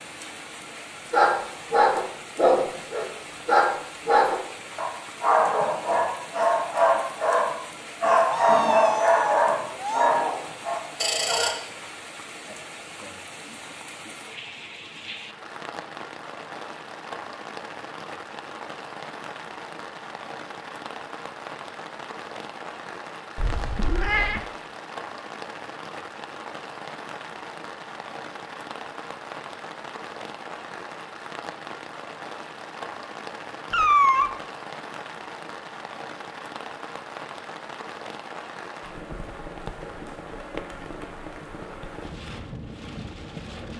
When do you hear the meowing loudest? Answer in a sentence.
The volume of the meowing peaks at 34 seconds.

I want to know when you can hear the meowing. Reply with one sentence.
The meowing can be heard from 8.3 to 10.2 s, from 23.4 to 24.4 s and from 33.7 to 34.3 s.